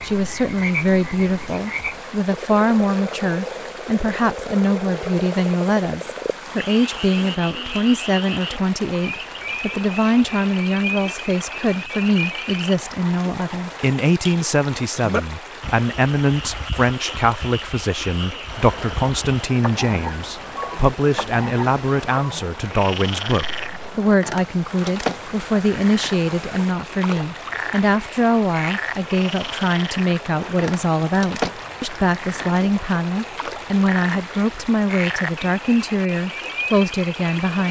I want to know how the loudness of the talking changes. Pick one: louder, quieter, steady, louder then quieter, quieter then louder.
steady.